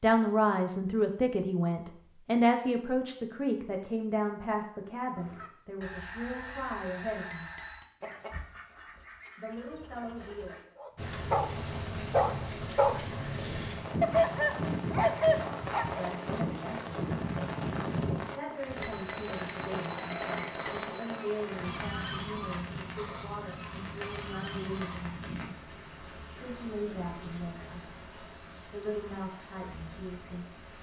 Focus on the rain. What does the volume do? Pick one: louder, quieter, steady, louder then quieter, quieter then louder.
quieter.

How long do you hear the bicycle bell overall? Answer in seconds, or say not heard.
3 s.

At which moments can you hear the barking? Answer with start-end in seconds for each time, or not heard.
10.8-16.4.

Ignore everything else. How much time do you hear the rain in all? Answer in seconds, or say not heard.
20 s.